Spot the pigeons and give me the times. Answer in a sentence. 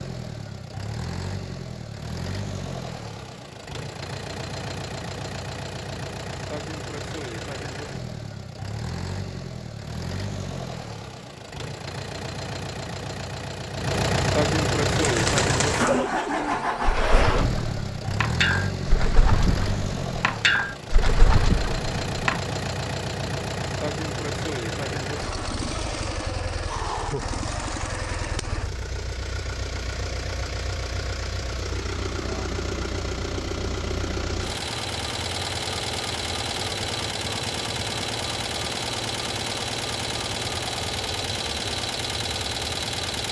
The pigeons can be heard from 14.9 to 22.4 s.